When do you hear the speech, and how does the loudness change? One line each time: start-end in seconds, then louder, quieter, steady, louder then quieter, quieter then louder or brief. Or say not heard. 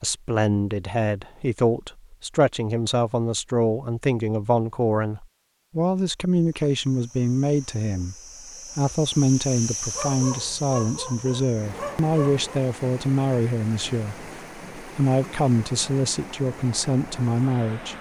0.0-8.2 steady
8.8-17.9 steady.